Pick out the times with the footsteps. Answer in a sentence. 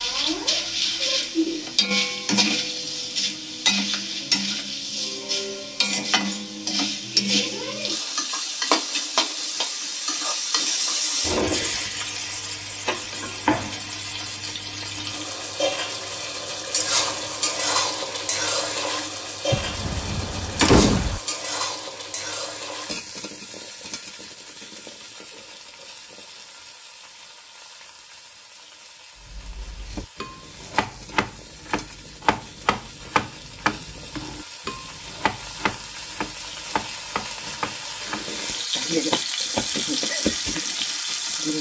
The footsteps can't be heard in this clip.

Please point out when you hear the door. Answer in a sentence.
You can hear the door from 19.5 to 21.2 s.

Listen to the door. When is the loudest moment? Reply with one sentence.
The loudest moment of the door is at 21 seconds.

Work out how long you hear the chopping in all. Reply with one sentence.
The chopping can be heard for 9 seconds in total.